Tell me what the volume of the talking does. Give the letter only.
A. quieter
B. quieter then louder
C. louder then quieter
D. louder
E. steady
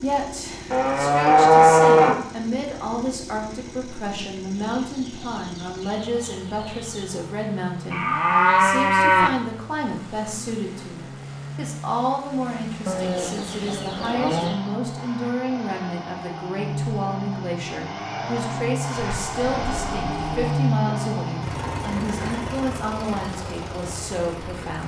E.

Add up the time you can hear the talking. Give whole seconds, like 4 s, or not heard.
25 s.